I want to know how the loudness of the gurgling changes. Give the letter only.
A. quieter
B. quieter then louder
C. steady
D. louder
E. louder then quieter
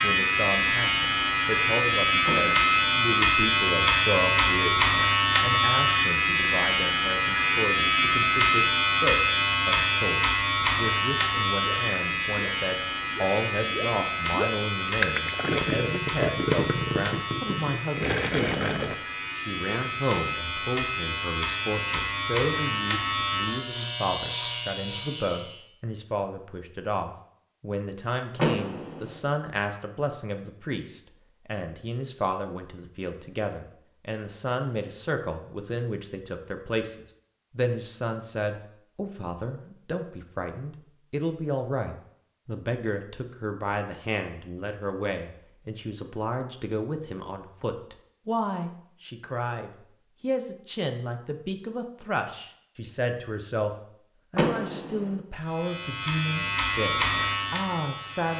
D.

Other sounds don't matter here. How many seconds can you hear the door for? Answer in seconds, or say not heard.
2 s.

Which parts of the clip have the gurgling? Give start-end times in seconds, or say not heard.
11.5-18.9.